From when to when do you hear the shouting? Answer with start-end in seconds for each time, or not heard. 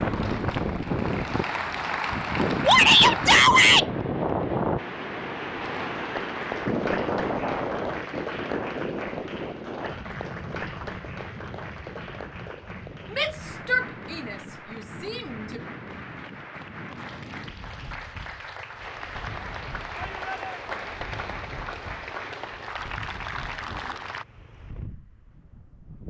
2.6-3.9, 13.1-15.6, 19.9-20.9.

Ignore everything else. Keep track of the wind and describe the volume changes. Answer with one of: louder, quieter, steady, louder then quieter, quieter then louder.
quieter.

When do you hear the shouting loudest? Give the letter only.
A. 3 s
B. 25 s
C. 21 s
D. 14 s
A.